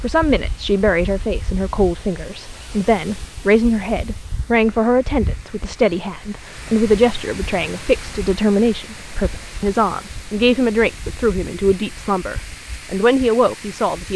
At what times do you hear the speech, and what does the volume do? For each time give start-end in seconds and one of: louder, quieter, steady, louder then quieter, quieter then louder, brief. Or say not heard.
0.0-14.1 steady.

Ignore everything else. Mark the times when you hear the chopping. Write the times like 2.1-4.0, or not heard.
not heard.